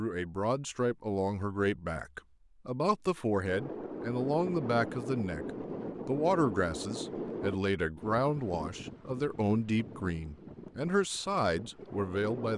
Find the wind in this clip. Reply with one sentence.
You can hear the wind from 3.4 to 12.5 s.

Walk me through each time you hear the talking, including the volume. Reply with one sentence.
You can hear the talking from 0.0 to 12.5 s, at a steady volume.